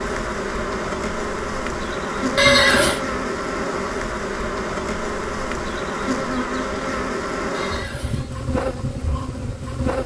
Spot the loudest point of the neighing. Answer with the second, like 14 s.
3 s.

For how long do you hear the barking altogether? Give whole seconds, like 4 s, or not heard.
not heard.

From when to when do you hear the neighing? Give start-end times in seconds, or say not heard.
2.4-3.0, 7.5-8.3.